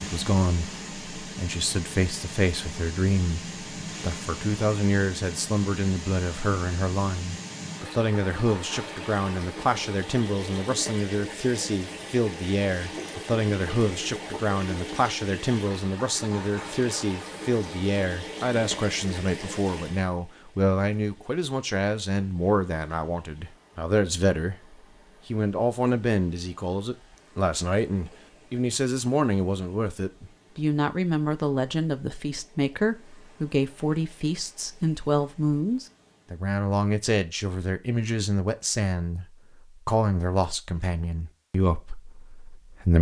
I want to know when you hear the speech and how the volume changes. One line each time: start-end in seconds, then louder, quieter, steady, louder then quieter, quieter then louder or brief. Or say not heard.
0.0-42.9 steady.